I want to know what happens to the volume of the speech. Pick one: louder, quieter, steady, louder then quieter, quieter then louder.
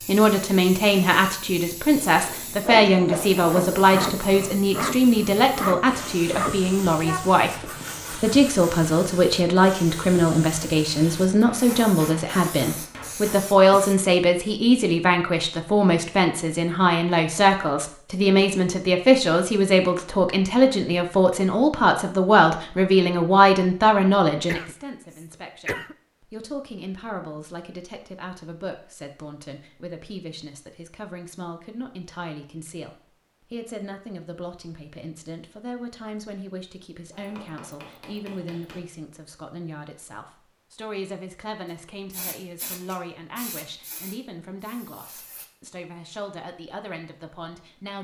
quieter.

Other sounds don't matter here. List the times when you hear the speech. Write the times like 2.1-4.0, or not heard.
0.0-47.9.